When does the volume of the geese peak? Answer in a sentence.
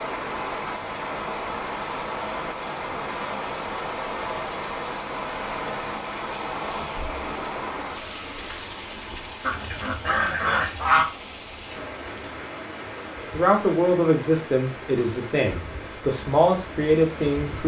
The volume of the geese peaks at 11 seconds.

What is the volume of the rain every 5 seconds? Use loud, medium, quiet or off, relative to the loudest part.
loud, loud, medium, medium.